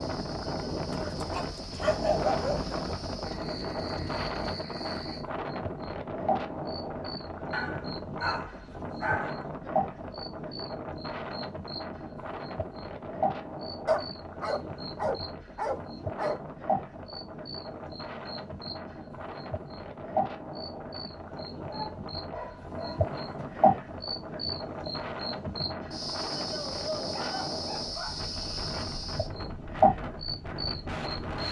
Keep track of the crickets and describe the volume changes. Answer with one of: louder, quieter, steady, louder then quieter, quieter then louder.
louder.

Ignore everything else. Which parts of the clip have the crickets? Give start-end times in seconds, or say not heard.
0.0-31.4.